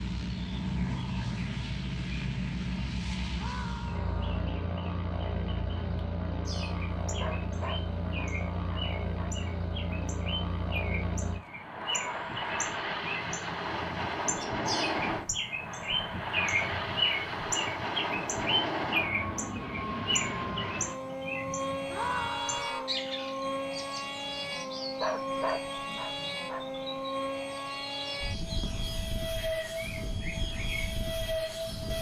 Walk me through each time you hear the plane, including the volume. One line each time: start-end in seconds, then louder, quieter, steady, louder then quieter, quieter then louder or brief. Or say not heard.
0.0-31.9 steady.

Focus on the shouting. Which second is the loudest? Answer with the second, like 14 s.
22 s.